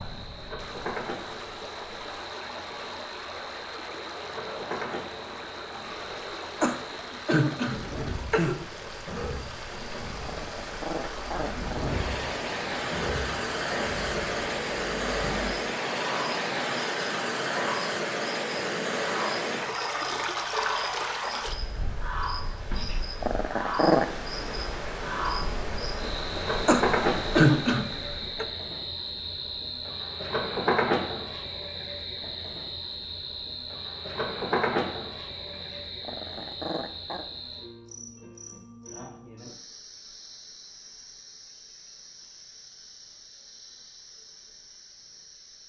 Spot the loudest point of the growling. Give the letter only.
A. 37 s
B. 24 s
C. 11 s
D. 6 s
B.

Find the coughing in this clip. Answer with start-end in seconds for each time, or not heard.
6.6-8.6, 26.6-28.4.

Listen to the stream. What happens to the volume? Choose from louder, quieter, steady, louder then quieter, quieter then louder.
louder then quieter.